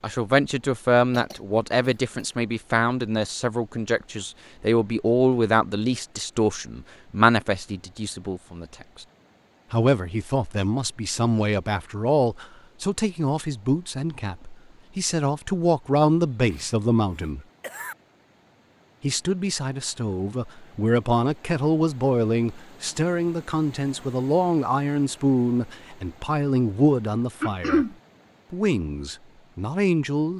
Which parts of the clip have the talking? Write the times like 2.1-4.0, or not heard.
0.0-9.1, 9.7-17.4, 19.0-27.9, 28.5-30.3.